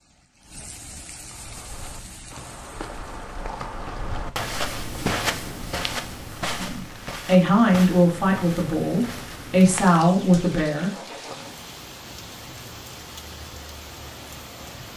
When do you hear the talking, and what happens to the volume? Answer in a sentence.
You can hear the talking from 6.5 to 10.9 s, getting quieter then louder.